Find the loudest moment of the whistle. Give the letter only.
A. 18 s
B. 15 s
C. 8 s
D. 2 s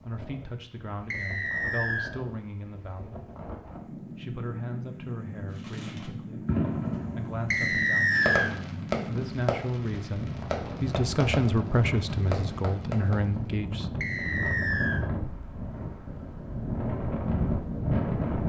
C.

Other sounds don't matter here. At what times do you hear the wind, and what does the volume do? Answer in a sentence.
You can hear the wind from 0.0 to 18.4 s, getting louder.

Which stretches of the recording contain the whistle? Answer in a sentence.
The whistle can be heard from 1.1 to 2.1 s, from 7.5 to 8.5 s and from 14.0 to 15.0 s.